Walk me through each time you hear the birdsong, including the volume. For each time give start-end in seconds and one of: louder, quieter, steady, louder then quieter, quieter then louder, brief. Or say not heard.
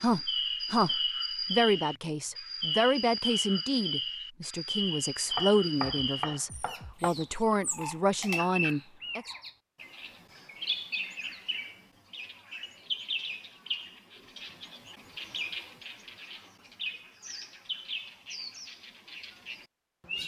0.0-20.2 quieter.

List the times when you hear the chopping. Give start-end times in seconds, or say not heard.
5.3-7.1.